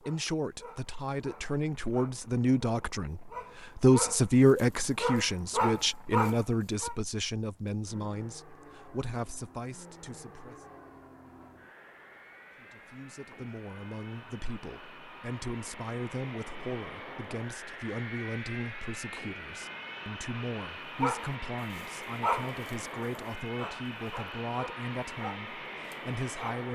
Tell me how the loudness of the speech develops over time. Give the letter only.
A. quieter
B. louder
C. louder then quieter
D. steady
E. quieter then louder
A.